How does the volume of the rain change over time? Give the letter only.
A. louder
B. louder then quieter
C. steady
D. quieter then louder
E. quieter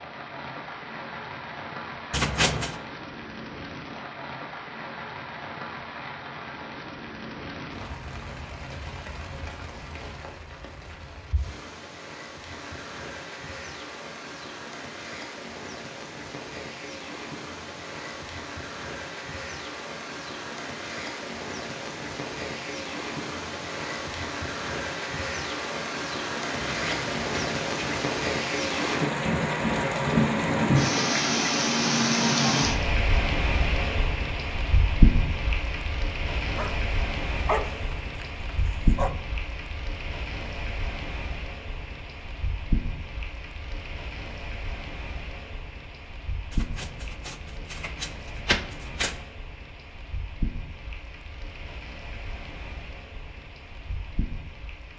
B.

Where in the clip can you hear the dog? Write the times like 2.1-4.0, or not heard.
36.5-39.1.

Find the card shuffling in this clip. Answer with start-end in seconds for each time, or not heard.
2.1-2.8, 26.6-27.9, 46.5-49.1.